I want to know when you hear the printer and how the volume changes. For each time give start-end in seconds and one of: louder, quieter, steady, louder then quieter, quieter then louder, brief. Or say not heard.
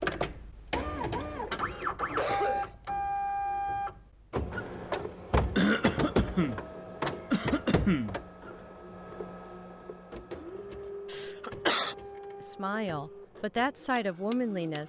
0.0-14.8 quieter.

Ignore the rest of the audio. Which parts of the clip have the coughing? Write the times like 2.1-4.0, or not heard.
1.3-2.8, 5.5-6.6, 7.3-8.2, 11.1-11.9.